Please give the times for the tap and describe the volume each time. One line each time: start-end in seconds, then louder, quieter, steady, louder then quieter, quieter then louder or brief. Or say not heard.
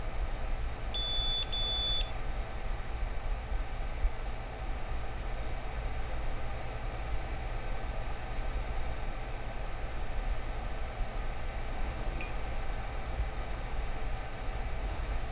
not heard.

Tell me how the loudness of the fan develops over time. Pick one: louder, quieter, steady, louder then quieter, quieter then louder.
steady.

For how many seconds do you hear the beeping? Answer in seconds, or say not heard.
2 s.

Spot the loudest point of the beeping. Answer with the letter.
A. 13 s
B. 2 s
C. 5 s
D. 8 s
B.